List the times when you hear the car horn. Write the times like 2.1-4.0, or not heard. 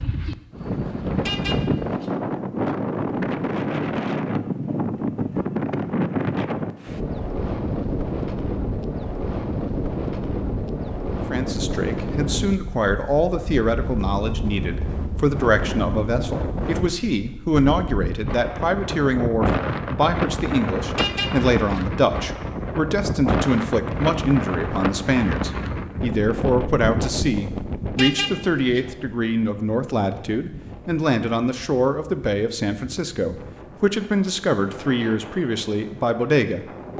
1.2-2.1, 20.9-21.9, 27.9-28.9.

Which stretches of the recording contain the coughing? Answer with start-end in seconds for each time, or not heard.
not heard.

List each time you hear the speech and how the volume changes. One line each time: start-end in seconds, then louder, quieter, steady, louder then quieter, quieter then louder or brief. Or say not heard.
11.3-36.9 steady.